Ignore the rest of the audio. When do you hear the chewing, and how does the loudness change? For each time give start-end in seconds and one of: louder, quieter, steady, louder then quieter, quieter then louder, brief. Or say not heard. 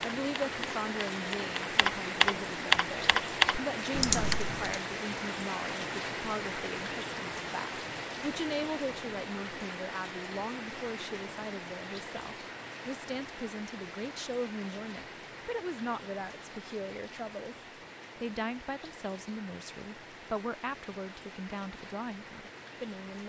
not heard.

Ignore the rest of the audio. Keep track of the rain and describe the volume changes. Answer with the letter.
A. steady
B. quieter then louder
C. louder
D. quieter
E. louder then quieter
D.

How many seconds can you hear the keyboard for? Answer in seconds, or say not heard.
5 s.